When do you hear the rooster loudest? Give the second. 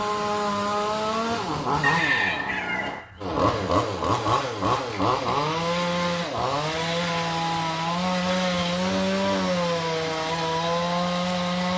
2 s.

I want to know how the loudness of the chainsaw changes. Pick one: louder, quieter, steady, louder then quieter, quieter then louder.
steady.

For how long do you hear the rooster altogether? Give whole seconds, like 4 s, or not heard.
2 s.